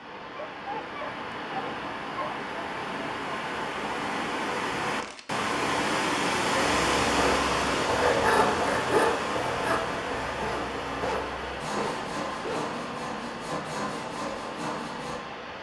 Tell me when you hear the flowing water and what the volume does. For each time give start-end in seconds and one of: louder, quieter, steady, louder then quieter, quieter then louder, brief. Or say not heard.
0.0-15.5 louder then quieter.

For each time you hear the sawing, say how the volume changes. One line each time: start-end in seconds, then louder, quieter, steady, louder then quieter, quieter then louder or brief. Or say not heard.
6.6-15.2 quieter.